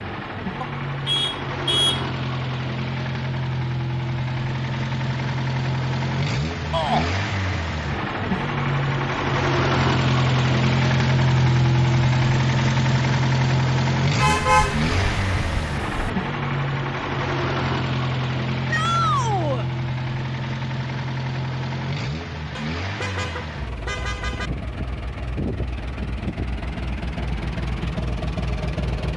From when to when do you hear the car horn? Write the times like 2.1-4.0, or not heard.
0.6-2.0, 14.2-16.1, 22.6-24.5.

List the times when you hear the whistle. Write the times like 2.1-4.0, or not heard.
not heard.